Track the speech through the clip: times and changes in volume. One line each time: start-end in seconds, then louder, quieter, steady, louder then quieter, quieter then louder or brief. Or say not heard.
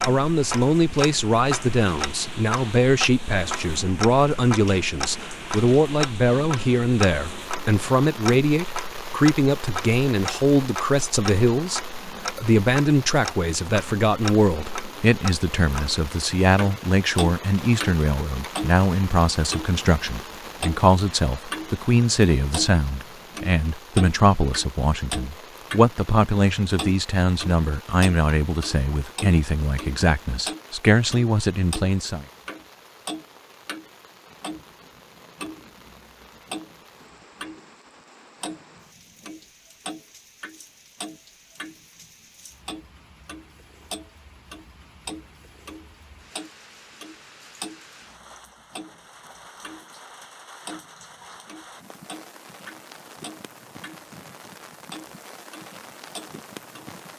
0.0-32.2 steady.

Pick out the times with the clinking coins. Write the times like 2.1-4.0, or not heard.
not heard.